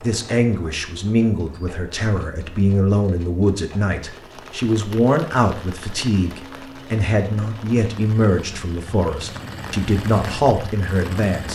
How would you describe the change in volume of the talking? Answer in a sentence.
The loudness of the talking stays about the same.